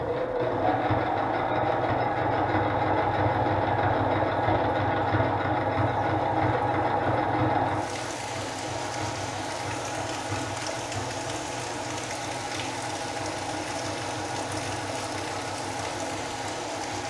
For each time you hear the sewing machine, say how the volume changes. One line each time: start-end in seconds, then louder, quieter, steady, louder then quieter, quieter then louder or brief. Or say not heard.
0.0-17.0 quieter.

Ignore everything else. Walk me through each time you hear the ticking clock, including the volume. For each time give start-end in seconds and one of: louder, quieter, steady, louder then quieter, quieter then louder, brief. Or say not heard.
not heard.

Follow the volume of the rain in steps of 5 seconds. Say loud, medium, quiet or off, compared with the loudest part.
off, loud, loud, loud.